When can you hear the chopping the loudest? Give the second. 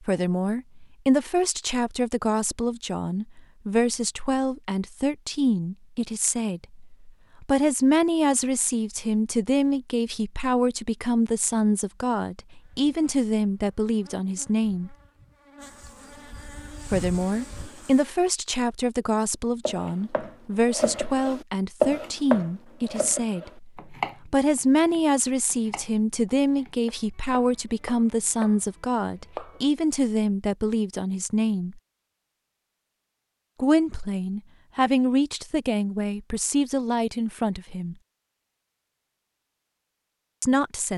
22 s.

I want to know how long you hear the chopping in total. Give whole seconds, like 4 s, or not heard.
10 s.